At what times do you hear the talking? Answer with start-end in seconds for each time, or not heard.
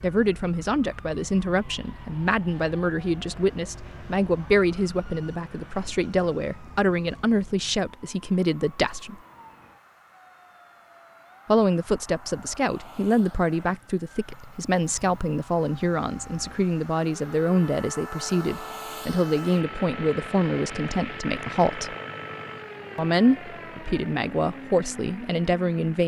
0.0-9.2, 11.4-21.9, 22.9-26.0.